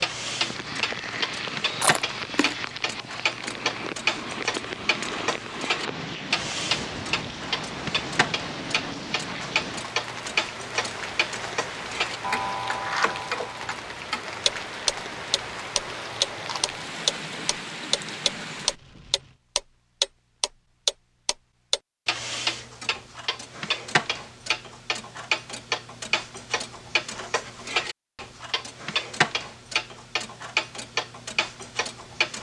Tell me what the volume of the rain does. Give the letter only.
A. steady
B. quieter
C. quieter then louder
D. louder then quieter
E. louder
A.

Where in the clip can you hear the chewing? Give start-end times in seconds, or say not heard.
1.8-2.7.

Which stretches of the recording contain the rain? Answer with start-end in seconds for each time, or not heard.
0.0-19.4.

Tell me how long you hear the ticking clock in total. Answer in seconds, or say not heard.
32 s.